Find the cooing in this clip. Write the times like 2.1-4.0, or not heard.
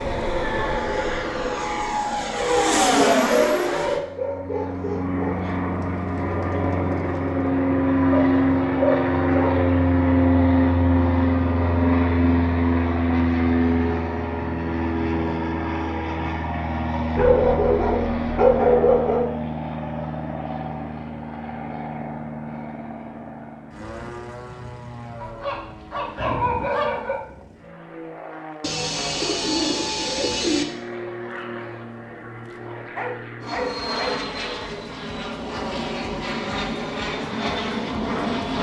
5.6-7.5, 28.6-30.6.